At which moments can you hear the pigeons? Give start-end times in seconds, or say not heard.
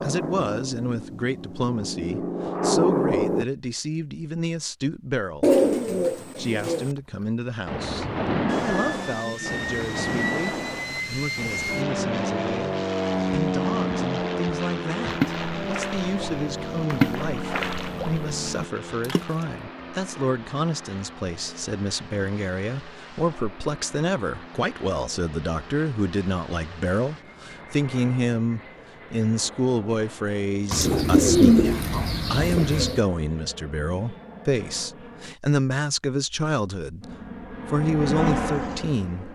5.4-6.9, 30.7-33.0.